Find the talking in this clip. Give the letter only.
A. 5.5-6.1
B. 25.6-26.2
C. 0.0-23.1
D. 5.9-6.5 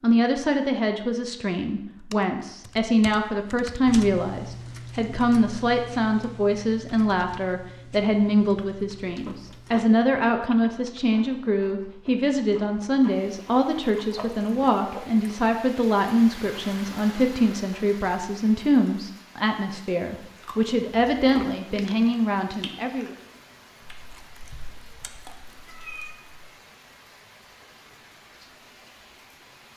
C.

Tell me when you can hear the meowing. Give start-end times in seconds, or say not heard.
25.6-26.2.